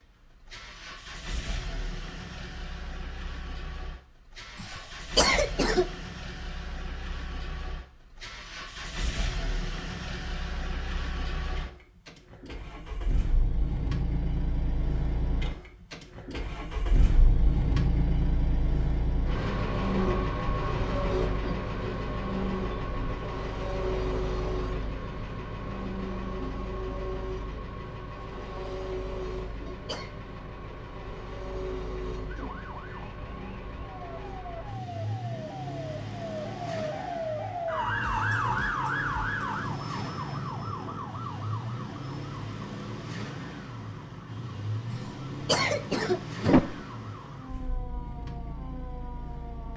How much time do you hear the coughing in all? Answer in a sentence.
The coughing can be heard for 4 seconds in total.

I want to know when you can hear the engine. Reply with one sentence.
The engine can be heard from 0.0 to 49.7 s.